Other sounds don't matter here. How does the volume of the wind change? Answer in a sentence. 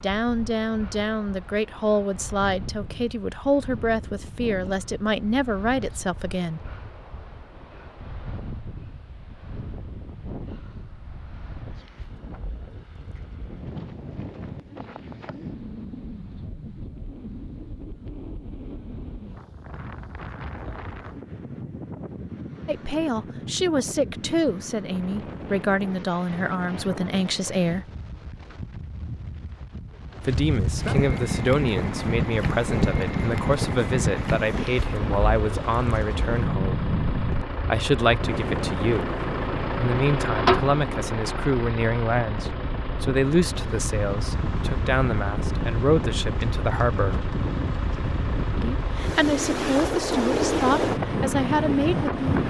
The volume of the wind goes up.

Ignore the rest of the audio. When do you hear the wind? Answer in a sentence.
You can hear the wind from 0.0 to 52.4 s.